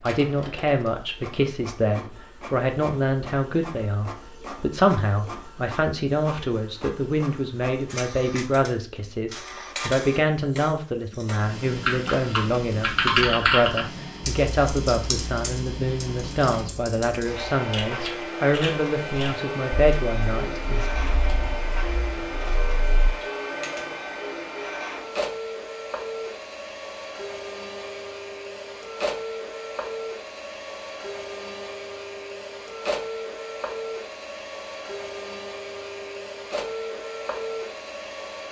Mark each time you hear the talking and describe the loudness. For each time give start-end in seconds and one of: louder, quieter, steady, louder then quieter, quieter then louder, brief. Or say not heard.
0.0-20.9 steady.